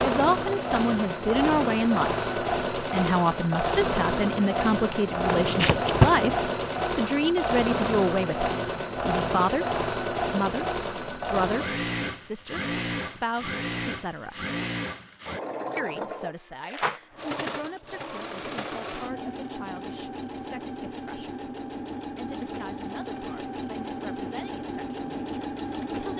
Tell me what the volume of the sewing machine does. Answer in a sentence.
The loudness of the sewing machine goes down.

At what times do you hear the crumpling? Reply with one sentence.
The crumpling can be heard from 5.2 to 6.4 s.